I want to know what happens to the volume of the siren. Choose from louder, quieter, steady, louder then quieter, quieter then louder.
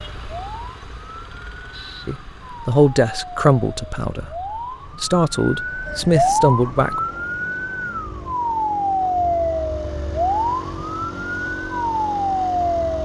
louder.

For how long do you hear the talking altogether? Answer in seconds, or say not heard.
4 s.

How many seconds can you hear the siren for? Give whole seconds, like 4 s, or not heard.
13 s.